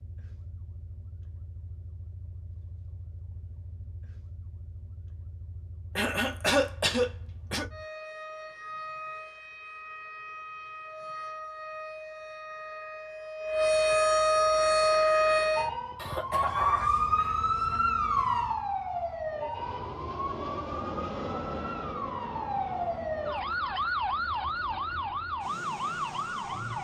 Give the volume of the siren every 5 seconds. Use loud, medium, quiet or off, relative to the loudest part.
quiet, quiet, loud, loud, medium, medium.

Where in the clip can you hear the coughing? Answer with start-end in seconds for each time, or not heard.
6.0-7.7, 15.9-17.4.